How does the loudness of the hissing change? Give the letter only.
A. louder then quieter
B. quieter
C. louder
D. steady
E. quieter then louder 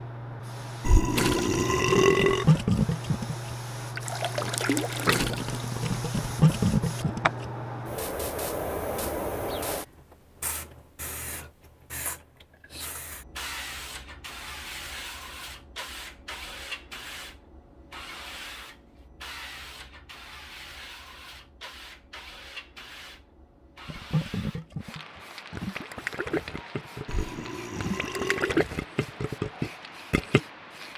B.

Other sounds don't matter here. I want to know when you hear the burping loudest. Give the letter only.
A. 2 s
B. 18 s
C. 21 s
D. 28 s
A.